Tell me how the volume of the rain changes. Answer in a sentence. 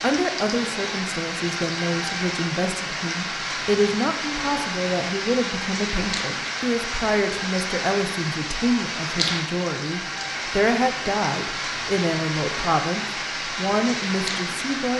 The loudness of the rain stays about the same.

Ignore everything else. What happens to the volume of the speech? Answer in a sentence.
The loudness of the speech stays about the same.